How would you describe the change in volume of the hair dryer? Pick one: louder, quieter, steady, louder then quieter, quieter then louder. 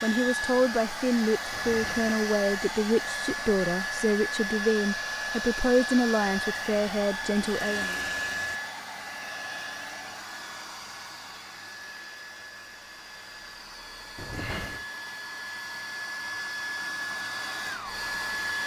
quieter then louder.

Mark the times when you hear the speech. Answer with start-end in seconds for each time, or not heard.
0.0-8.0.